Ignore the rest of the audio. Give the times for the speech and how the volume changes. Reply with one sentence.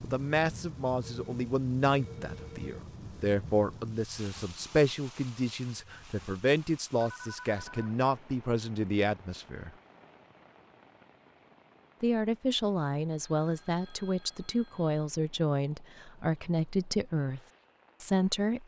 The speech can be heard from 0.0 to 9.7 s, at a steady volume; from 12.0 to 17.4 s, at a steady volume; and briefly from 18.0 to 18.6 s.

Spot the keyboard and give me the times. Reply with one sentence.
The keyboard can't be heard in this clip.